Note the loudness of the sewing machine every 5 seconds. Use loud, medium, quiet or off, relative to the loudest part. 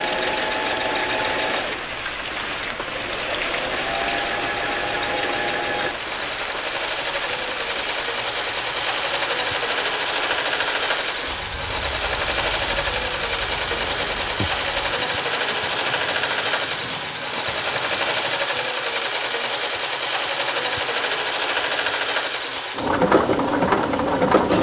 medium, loud, loud, loud, loud.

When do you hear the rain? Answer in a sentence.
The rain can be heard from 0.1 to 18.5 s.